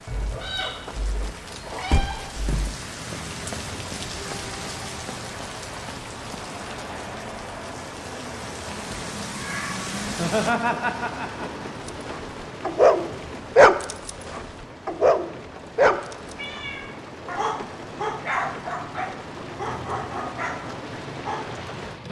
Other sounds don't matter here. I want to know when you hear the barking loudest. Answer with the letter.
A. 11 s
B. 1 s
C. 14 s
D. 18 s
C.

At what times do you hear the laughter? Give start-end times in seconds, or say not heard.
10.1-11.7.